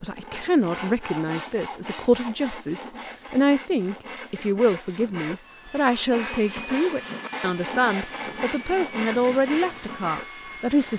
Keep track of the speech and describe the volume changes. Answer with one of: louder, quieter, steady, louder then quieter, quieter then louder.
steady.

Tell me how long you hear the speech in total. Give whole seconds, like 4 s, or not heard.
11 s.